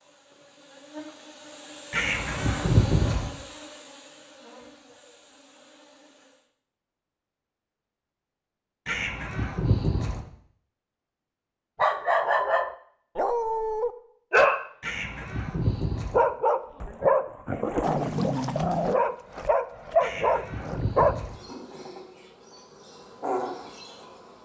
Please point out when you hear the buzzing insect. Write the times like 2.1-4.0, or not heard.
0.0-6.5, 21.1-24.3.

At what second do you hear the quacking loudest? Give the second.
3 s.